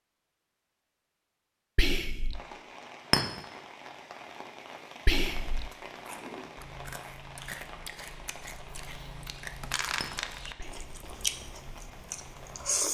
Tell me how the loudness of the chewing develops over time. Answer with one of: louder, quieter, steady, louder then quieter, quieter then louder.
louder.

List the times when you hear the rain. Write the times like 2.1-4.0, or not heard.
2.3-12.8.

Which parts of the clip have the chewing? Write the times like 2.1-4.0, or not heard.
5.7-12.8.